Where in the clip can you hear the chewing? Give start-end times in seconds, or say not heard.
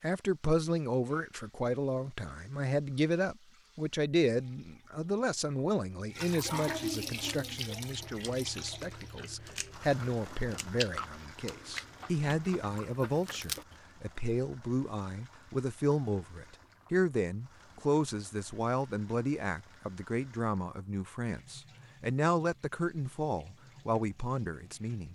7.2-13.6.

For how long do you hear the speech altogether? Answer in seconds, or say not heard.
25 s.